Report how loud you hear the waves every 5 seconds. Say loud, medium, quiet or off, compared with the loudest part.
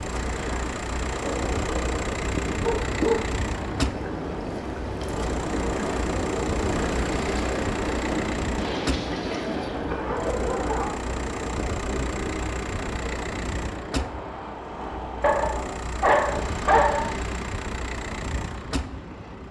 medium, loud, medium, medium.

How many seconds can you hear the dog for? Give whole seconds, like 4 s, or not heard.
6 s.